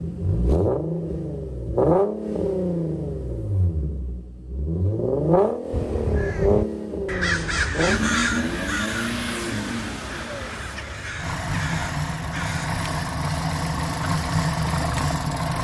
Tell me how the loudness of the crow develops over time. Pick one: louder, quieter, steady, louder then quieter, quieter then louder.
quieter.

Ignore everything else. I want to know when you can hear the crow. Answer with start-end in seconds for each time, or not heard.
5.7-12.8.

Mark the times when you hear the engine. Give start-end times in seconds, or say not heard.
0.0-15.5.